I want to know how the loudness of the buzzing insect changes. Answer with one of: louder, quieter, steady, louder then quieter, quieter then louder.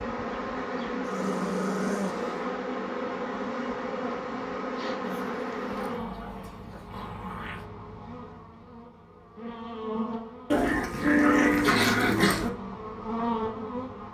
quieter then louder.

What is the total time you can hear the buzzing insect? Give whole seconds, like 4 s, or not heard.
14 s.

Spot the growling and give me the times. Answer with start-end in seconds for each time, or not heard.
1.0-2.5, 5.0-7.7, 10.5-12.5.